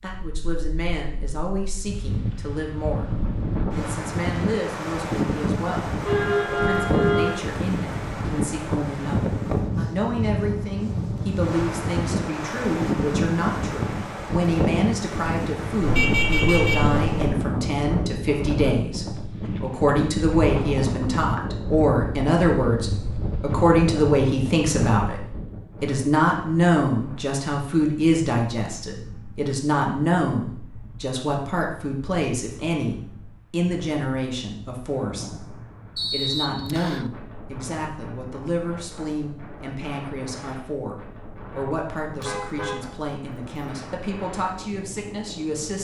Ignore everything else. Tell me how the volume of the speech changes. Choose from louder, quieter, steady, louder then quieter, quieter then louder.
louder then quieter.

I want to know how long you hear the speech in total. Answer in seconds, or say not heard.
46 s.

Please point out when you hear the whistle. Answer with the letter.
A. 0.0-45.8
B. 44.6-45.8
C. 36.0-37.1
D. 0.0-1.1
C.